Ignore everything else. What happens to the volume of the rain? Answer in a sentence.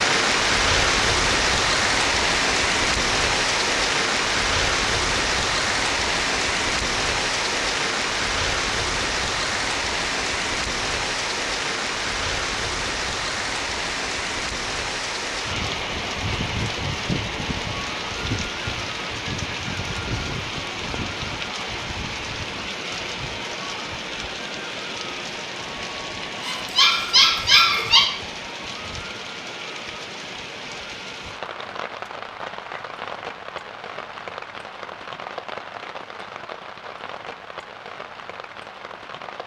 The volume of the rain goes down.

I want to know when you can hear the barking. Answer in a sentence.
You can hear the barking from 26.4 to 28.1 s.